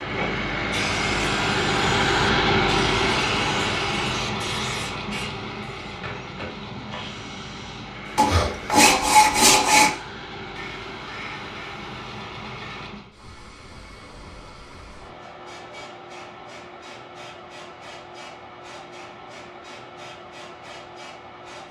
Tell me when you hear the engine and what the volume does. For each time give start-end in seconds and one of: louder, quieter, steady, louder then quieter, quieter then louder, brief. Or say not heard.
0.0-13.2 quieter.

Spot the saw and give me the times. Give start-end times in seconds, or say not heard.
8.2-9.9.